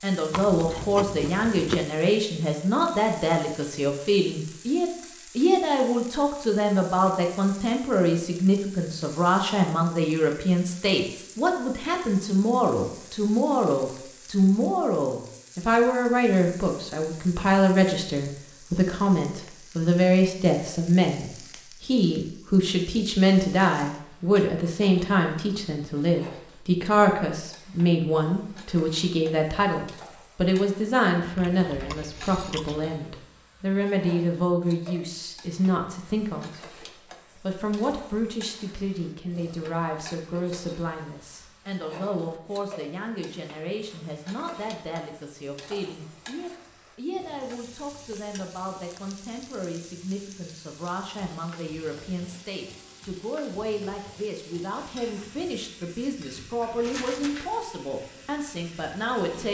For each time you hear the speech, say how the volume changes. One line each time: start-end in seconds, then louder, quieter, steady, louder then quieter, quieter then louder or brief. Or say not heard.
0.0-59.5 quieter.